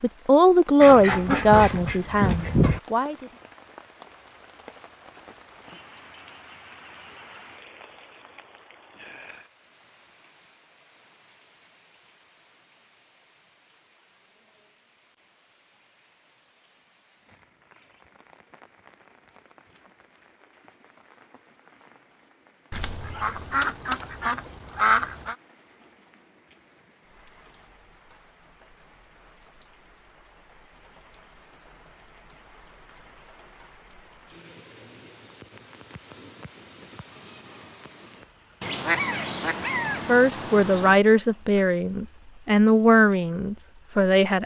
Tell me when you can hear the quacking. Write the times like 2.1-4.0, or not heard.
0.8-2.8, 22.7-25.4, 38.6-41.0.